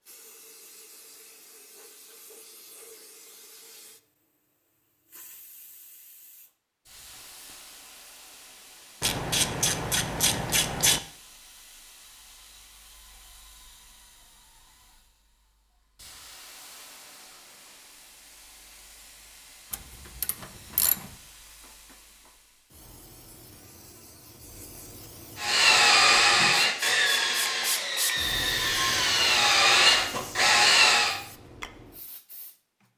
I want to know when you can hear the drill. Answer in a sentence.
The drill can be heard from 25.4 to 31.1 s.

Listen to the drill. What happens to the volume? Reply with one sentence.
The loudness of the drill goes down, then up.